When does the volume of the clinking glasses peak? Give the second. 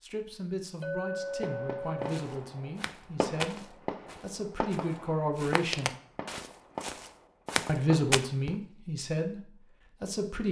1 s.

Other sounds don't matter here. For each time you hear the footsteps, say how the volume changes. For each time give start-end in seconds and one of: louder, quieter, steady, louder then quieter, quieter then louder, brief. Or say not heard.
2.0-8.2 quieter then louder.